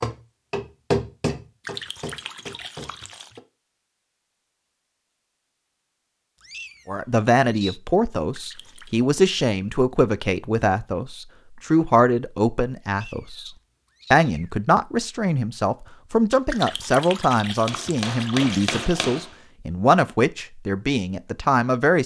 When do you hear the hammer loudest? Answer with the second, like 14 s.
1 s.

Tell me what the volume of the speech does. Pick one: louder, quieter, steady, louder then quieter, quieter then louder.
steady.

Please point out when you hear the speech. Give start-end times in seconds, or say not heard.
6.8-13.5, 14.1-22.0.